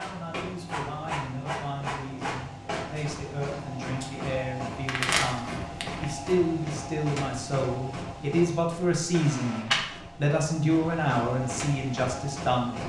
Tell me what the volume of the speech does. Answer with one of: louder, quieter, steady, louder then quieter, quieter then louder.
louder.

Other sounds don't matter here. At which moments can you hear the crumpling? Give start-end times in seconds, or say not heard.
4.8-6.3.